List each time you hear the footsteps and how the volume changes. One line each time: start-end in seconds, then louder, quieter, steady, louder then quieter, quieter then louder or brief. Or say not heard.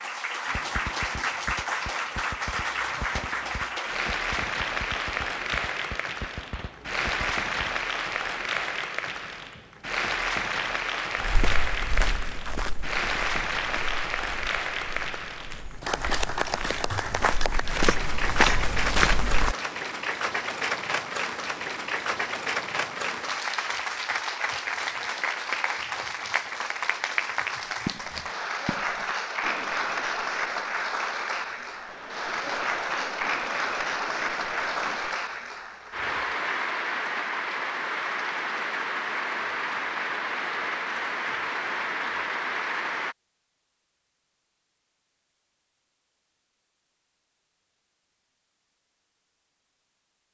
11.2-19.6 quieter then louder.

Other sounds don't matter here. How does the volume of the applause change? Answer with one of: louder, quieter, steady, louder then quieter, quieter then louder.
steady.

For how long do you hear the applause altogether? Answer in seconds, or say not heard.
43 s.